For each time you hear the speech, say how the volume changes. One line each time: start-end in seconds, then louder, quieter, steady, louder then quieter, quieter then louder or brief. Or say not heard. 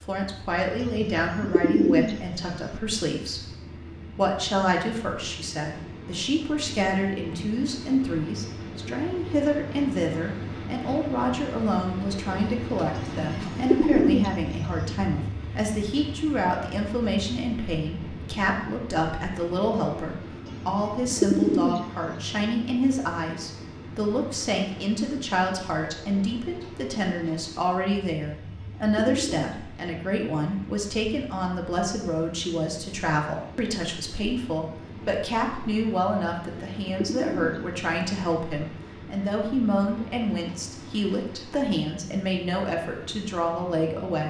0.0-44.2 steady.